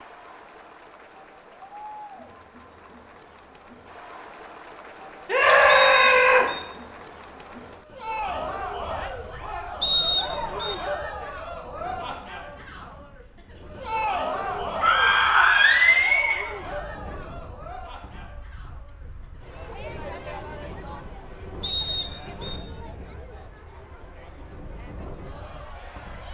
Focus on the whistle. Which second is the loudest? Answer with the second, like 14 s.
10 s.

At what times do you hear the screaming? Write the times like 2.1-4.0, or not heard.
5.2-6.5, 14.8-16.4.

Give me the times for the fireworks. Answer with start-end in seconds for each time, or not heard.
not heard.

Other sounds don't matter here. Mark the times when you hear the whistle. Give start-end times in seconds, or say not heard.
5.7-6.7, 9.8-10.8, 21.6-22.6.